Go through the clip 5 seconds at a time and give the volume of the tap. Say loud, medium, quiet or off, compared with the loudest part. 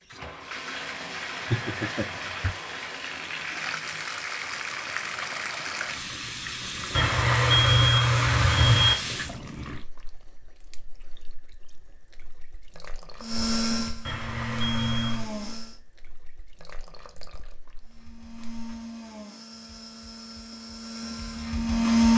loud, loud, quiet, quiet, off.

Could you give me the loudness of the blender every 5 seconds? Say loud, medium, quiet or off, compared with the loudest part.
off, off, medium, quiet, loud.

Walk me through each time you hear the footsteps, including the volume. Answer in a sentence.
The footsteps can't be heard in this clip.